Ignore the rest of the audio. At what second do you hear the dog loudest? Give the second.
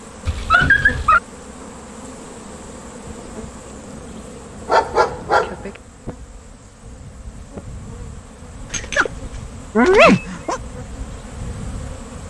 10 s.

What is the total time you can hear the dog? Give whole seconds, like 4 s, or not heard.
4 s.